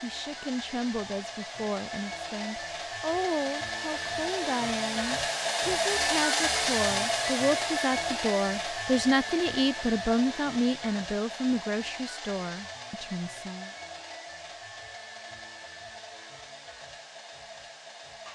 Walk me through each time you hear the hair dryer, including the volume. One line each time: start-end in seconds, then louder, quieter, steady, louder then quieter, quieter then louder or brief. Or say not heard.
0.0-18.2 louder then quieter.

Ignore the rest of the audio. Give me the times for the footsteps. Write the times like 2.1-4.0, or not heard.
not heard.